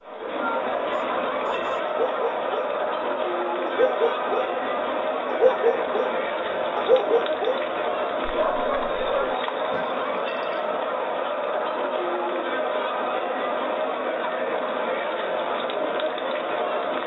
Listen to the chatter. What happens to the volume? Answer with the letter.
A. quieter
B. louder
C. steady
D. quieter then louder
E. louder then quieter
C.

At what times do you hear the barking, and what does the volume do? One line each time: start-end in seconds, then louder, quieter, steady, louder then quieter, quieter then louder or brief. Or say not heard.
0.8-2.8 brief
3.6-4.5 brief
5.2-6.2 brief
6.8-10.8 quieter.